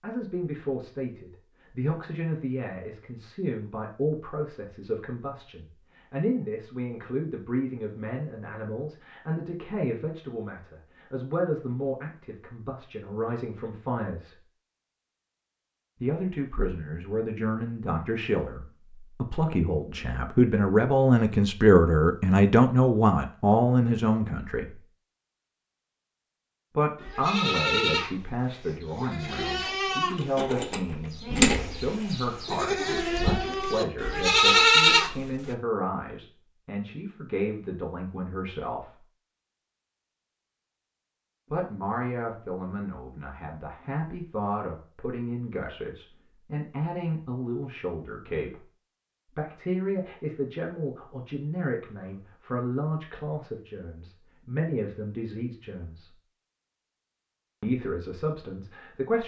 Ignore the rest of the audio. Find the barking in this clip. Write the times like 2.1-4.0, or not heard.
not heard.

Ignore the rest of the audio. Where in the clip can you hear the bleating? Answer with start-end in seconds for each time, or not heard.
27.0-35.5.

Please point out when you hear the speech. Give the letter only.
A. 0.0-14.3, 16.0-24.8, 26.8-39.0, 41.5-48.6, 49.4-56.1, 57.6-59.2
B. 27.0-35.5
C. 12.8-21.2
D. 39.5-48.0
A.